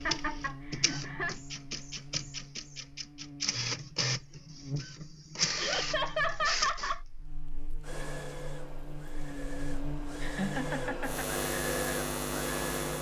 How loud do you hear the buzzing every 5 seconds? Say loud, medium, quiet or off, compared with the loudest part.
medium, medium, loud.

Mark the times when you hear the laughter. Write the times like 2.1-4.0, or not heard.
0.1-1.4, 5.5-7.0, 10.2-11.2.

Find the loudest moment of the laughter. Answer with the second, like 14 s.
6 s.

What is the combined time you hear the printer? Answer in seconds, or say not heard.
13 s.